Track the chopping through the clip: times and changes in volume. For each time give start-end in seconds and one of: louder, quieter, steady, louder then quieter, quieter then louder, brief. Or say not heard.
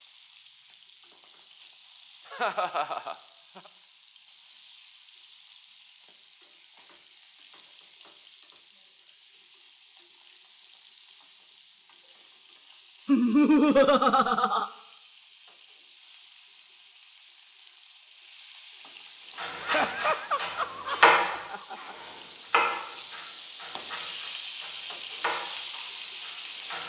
19.4-26.8 quieter then louder.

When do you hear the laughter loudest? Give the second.
14 s.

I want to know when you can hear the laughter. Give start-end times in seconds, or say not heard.
2.3-3.1, 13.1-14.7, 19.6-21.8.